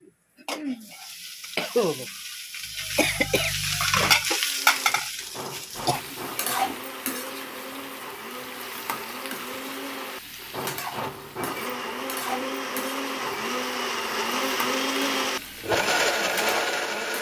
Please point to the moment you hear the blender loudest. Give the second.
16 s.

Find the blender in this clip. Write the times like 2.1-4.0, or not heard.
4.4-17.1.